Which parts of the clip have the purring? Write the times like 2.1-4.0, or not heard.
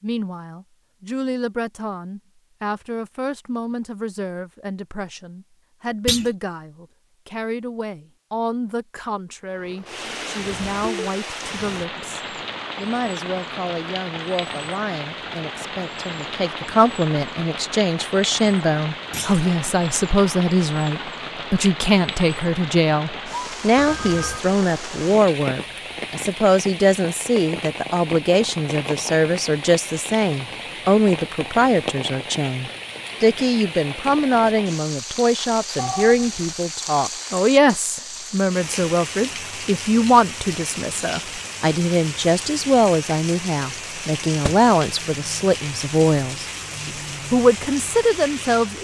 not heard.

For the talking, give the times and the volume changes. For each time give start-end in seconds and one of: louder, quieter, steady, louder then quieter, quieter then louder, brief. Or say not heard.
0.0-48.7 louder.